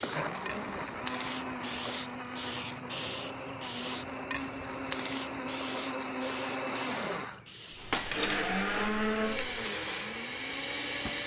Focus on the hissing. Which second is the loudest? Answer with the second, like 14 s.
3 s.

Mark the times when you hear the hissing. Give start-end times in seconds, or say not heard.
0.0-11.2.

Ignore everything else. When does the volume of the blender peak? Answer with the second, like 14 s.
9 s.